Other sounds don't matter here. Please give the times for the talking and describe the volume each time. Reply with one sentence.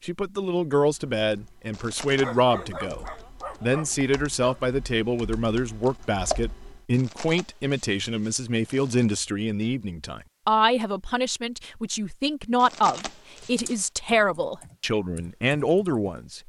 The talking can be heard from 0.0 to 16.4 s, at a steady volume.